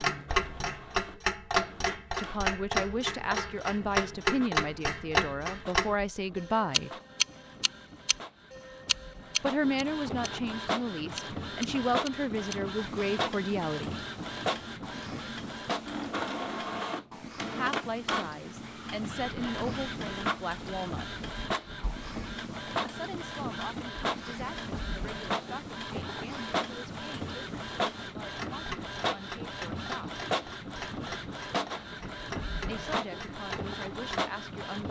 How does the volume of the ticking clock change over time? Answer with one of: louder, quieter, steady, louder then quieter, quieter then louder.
quieter.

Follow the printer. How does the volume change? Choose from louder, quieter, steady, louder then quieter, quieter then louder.
louder.